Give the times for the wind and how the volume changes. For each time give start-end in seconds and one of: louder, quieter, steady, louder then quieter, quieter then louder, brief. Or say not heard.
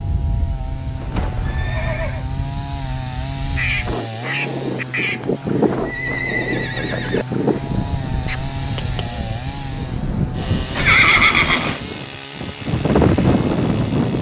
0.0-14.1 louder.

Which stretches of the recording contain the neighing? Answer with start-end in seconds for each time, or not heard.
0.9-2.2, 5.8-7.2, 10.8-11.8.